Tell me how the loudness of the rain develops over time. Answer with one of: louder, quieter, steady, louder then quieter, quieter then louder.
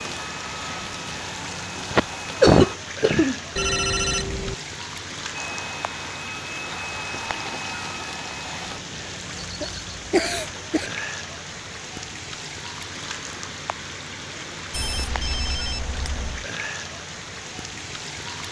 steady.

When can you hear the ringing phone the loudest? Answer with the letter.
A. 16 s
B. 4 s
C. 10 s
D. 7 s
B.